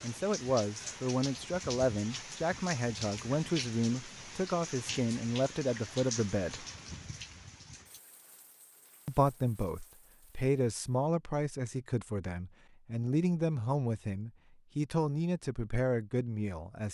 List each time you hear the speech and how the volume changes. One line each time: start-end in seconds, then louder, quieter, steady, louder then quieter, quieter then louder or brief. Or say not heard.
0.0-6.7 steady
9.1-16.8 steady.